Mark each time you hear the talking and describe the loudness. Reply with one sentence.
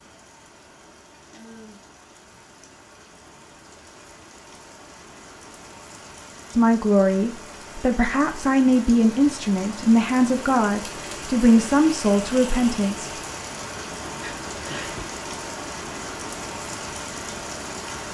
The talking can be heard from 6.5 to 13.1 s, at a steady volume.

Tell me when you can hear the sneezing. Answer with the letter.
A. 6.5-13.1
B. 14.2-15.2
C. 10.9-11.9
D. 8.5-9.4
B.